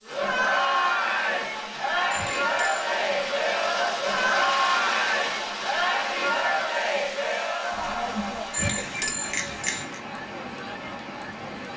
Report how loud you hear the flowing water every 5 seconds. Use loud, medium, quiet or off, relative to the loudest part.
loud, loud, medium.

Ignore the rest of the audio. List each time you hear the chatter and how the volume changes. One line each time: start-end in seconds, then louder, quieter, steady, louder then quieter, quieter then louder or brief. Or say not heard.
0.0-11.7 quieter.